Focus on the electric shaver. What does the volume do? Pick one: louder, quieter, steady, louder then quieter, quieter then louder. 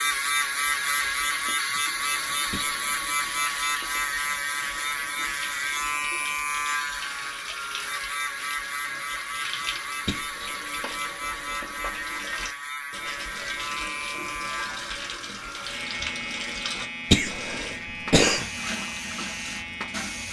quieter.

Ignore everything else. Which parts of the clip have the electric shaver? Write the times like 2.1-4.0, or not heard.
0.0-20.2.